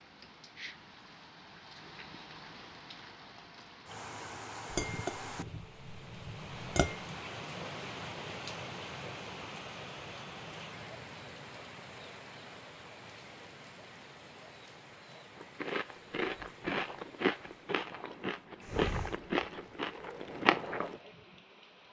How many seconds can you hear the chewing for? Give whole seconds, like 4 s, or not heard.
6 s.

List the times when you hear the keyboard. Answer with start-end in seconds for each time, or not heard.
not heard.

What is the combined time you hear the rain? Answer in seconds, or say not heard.
22 s.